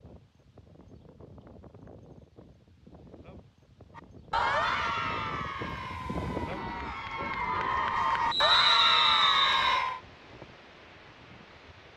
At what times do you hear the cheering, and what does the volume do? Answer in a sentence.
You can hear the cheering from 4.0 to 10.0 s, getting quieter then louder.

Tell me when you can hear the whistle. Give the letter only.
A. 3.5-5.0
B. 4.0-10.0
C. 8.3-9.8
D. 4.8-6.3
C.